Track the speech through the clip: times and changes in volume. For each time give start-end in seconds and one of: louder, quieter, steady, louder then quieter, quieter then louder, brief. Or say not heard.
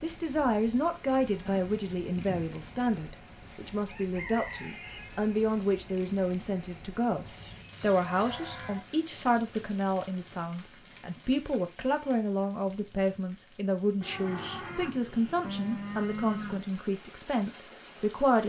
0.0-18.4 steady.